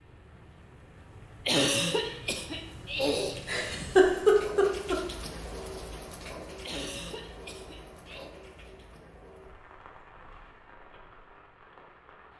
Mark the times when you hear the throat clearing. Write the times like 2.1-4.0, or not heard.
1.4-3.4, 6.7-8.3.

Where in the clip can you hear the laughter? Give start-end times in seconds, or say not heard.
3.4-5.0.